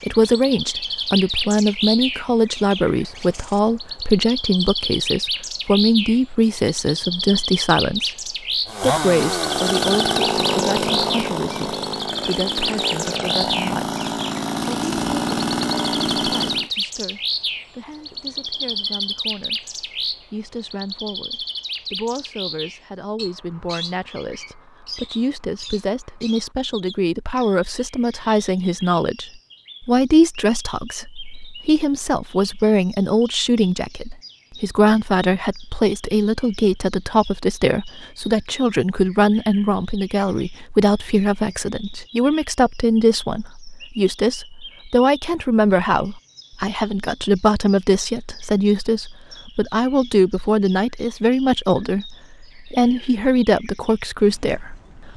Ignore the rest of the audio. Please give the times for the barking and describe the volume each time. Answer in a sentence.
The barking can't be heard in this clip.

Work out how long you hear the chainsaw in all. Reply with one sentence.
You can hear the chainsaw for 8 seconds altogether.